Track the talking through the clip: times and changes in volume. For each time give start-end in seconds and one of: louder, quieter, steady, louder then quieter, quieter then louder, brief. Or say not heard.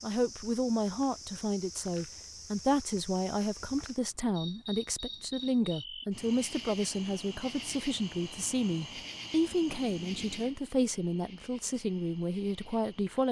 0.0-13.2 steady.